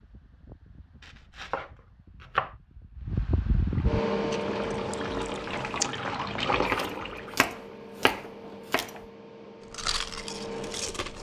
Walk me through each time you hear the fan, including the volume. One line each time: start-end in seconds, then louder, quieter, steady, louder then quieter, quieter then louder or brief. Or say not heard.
0.0-11.1 louder then quieter.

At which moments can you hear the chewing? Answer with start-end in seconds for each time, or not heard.
4.3-6.0, 9.7-11.1.